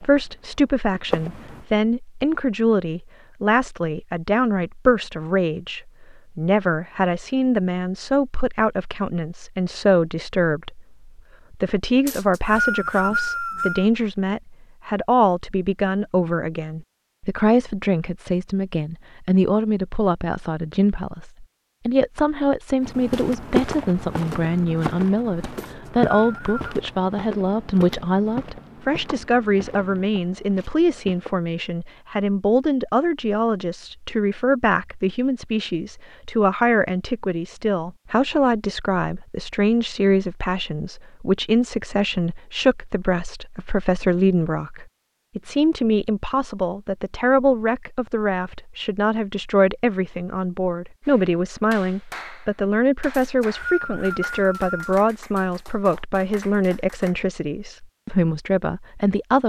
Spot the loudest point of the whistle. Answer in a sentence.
The loudest moment of the whistle is at 13 seconds.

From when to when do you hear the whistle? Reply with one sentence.
You can hear the whistle from 12.1 to 13.8 s, from 25.6 to 26.8 s and from 53.1 to 54.9 s.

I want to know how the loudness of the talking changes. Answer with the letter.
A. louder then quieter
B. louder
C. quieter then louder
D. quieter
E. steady
E.